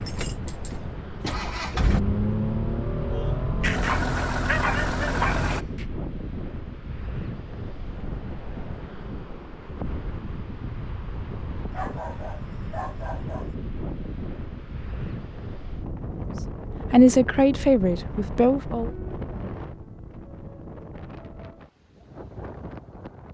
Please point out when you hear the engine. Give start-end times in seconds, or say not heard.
0.0-5.7.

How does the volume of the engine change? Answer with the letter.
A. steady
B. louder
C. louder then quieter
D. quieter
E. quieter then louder
B.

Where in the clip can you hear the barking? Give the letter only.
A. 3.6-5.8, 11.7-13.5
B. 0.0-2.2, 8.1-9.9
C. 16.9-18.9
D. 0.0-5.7
A.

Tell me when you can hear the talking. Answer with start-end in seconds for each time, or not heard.
16.9-18.9.